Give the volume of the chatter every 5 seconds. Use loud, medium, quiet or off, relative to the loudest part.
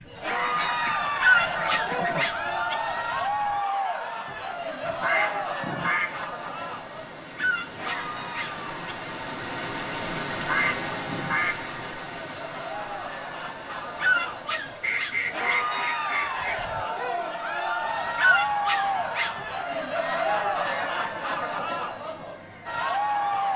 loud, medium, medium, loud, loud.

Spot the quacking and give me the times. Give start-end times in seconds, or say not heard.
0.3-2.3, 4.8-6.2, 10.3-11.7, 14.8-16.8, 19.6-21.6.